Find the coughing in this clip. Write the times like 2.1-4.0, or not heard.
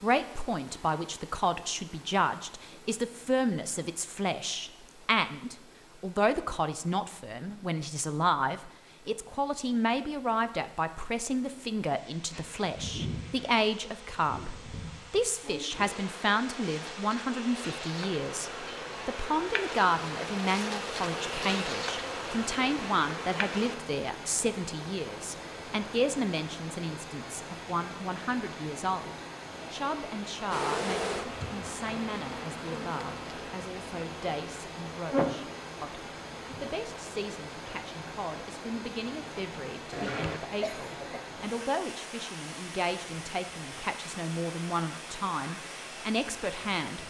39.9-41.2.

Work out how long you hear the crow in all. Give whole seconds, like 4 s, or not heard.
not heard.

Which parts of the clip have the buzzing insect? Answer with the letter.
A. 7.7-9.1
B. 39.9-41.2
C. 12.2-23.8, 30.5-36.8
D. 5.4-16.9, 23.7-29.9
C.